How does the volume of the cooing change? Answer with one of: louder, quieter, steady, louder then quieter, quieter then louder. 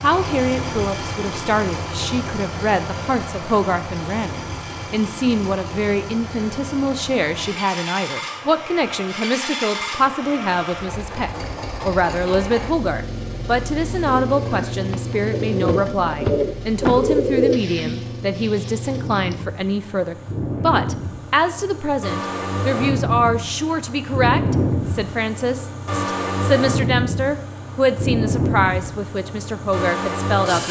louder then quieter.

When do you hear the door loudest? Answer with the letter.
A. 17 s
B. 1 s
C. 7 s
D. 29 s
A.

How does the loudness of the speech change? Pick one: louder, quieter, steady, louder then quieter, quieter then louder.
steady.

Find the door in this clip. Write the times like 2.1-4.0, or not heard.
15.7-17.1.